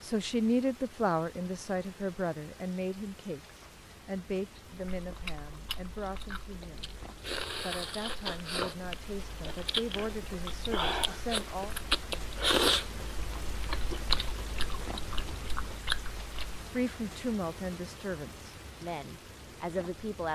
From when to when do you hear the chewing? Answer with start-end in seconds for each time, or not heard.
4.7-16.6.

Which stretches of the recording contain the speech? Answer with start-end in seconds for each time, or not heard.
0.0-11.8, 16.7-20.3.